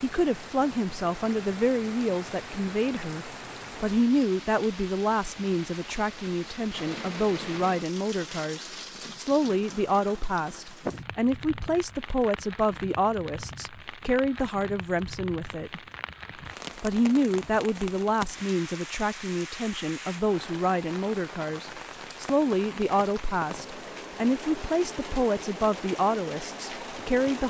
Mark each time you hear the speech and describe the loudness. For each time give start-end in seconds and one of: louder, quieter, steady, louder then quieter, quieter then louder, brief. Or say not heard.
0.0-15.8 steady
16.8-27.4 steady.